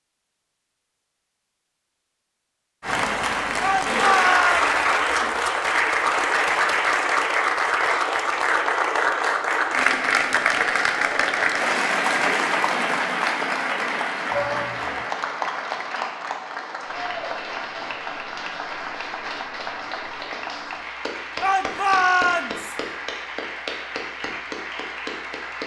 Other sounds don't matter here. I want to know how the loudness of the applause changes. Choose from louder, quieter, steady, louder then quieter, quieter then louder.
quieter.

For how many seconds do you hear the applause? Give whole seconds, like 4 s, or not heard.
23 s.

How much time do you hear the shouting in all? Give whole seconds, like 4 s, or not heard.
3 s.